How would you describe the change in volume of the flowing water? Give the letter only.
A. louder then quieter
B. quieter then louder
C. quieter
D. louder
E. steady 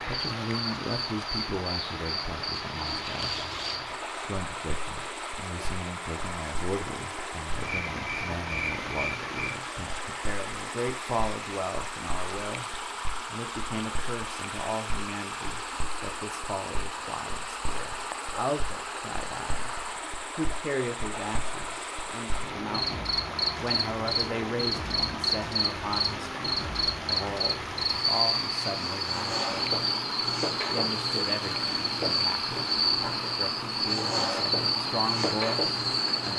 E.